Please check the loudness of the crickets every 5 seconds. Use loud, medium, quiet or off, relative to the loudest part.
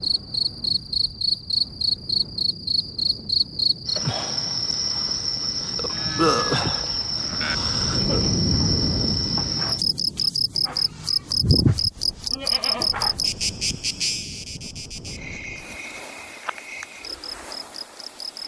loud, loud, loud, quiet.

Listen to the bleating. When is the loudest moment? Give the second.
12 s.